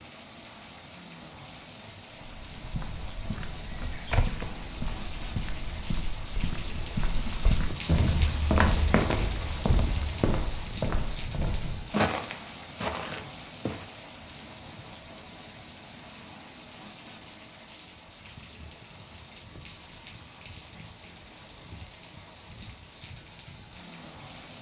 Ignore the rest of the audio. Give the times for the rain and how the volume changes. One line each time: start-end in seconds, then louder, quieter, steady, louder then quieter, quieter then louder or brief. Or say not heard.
0.0-24.5 louder then quieter.